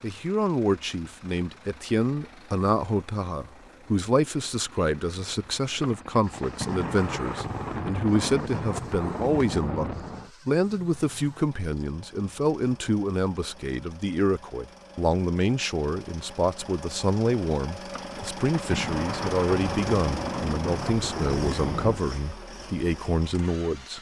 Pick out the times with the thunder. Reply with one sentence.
The thunder can be heard from 5.8 to 10.3 s and from 17.9 to 22.0 s.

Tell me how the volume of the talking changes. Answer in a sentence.
The loudness of the talking stays about the same.